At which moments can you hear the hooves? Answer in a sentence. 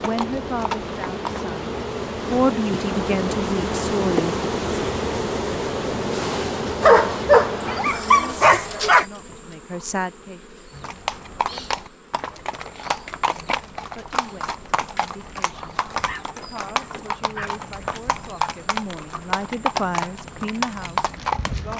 The hooves can be heard from 0.0 to 1.5 s and from 10.7 to 21.7 s.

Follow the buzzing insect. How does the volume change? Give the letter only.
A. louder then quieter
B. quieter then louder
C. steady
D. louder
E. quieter
E.